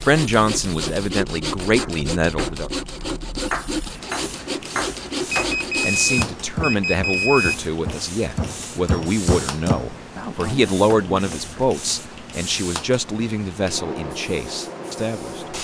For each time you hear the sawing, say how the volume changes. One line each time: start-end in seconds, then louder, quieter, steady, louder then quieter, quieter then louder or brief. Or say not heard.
0.0-6.3 steady.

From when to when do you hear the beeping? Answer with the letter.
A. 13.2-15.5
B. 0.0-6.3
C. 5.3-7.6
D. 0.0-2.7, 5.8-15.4
C.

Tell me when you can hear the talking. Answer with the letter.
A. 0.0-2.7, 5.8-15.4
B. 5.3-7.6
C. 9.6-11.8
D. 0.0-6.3
A.